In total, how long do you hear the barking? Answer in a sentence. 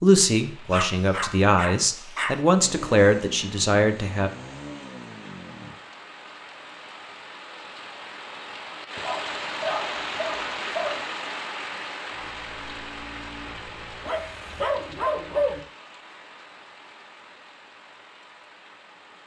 The barking can be heard for 5 seconds in total.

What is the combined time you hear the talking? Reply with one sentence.
The talking can be heard for 4 seconds in total.